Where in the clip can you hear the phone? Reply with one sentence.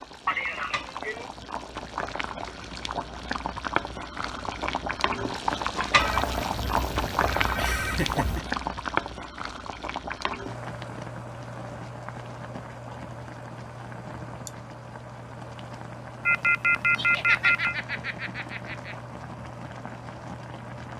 You can hear the phone from 6.0 to 8.4 s and from 16.2 to 17.8 s.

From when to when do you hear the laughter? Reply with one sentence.
The laughter can be heard from 0.2 to 1.3 s, from 7.5 to 8.4 s and from 16.9 to 18.9 s.